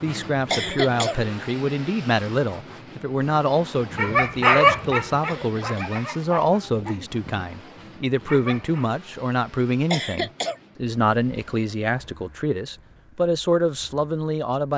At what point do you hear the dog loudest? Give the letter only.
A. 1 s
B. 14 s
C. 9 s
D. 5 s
D.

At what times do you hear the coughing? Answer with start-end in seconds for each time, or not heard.
0.5-1.2, 5.2-6.0, 9.9-10.6.